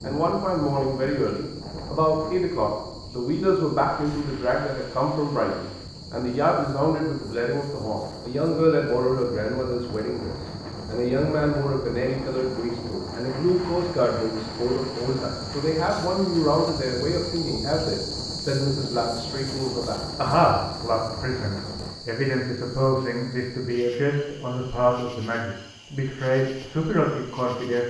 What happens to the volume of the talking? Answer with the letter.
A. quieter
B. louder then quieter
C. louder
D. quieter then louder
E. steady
E.